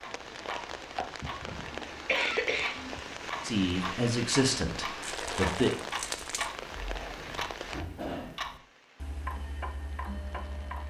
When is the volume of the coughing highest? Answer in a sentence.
The loudest moment of the coughing is at 2 seconds.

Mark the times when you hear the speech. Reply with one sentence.
You can hear the speech from 3.5 to 5.8 s.